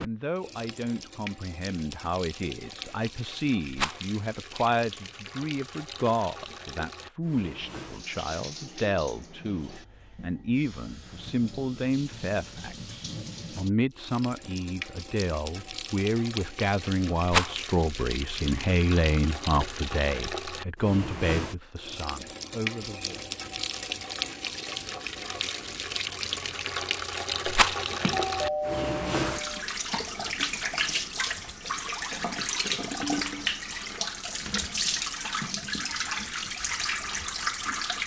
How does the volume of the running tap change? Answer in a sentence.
The volume of the running tap goes up.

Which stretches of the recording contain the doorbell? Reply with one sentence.
The doorbell can be heard from 28.0 to 29.6 s.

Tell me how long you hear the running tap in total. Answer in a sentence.
The running tap can be heard for 38 seconds in total.